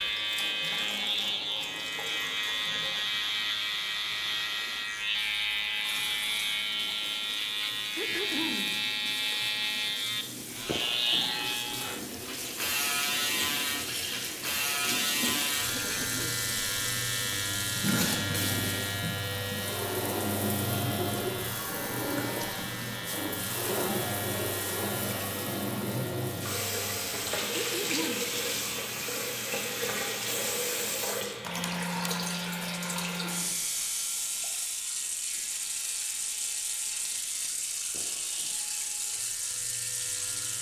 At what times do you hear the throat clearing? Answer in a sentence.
The throat clearing can be heard from 8.0 to 8.8 s, from 15.7 to 16.4 s and from 27.5 to 28.4 s.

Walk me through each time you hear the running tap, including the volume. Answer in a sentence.
You can hear the running tap from 0.0 to 40.5 s, getting louder.